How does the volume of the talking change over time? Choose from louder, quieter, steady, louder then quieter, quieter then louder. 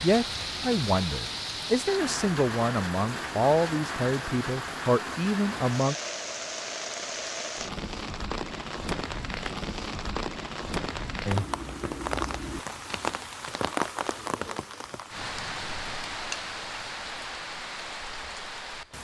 steady.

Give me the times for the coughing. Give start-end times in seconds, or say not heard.
not heard.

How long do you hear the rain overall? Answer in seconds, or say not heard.
19 s.